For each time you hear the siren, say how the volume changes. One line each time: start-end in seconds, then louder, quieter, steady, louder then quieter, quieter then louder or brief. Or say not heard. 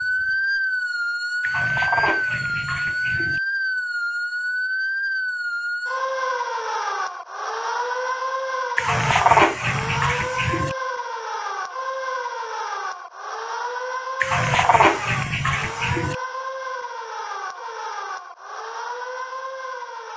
0.0-20.1 quieter.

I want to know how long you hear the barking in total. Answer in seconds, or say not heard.
6 s.